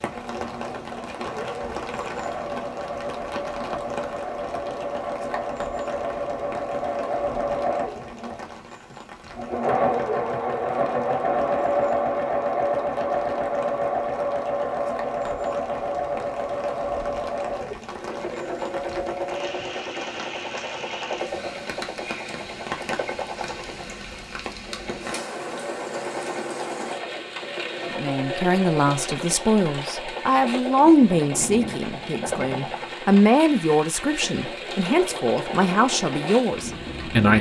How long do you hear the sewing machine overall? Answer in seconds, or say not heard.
37 s.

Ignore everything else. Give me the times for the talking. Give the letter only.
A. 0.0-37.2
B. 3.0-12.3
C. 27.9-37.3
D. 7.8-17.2
C.